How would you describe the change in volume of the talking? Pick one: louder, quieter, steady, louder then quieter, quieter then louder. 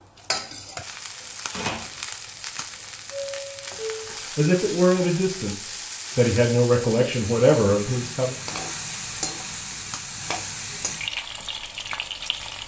quieter then louder.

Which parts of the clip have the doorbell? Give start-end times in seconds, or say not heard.
3.1-4.2.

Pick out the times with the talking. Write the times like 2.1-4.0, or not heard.
4.3-8.3.